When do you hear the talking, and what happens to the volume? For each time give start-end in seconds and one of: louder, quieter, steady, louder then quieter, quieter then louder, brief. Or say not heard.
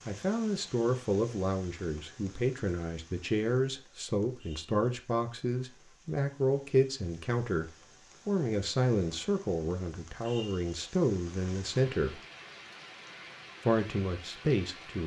0.1-12.2 steady
13.7-15.0 brief.